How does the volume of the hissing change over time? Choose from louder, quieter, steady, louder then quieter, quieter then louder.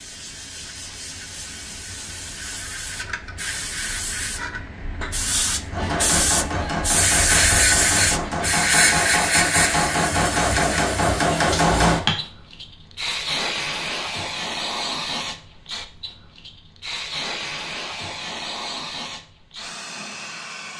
louder then quieter.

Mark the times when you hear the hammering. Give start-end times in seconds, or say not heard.
5.7-12.2.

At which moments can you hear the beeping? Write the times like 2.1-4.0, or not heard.
not heard.